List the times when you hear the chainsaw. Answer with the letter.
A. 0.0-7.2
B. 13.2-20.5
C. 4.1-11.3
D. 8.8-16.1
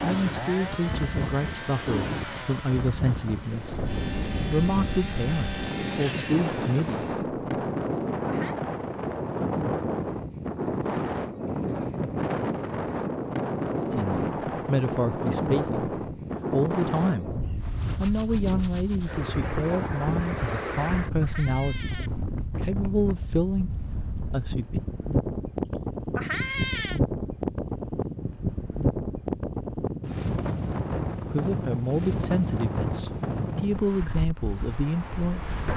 A.